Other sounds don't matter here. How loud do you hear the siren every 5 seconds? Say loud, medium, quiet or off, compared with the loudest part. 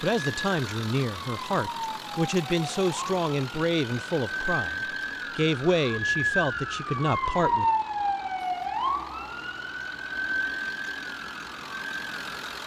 medium, loud, medium.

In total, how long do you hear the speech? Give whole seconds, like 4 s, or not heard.
8 s.